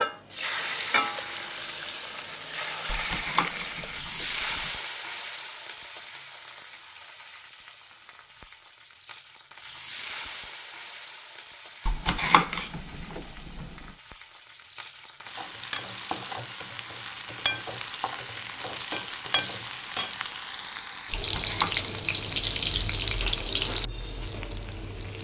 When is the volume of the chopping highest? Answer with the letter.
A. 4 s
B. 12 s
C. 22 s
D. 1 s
B.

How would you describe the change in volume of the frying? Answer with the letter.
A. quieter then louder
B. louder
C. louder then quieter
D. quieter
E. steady
A.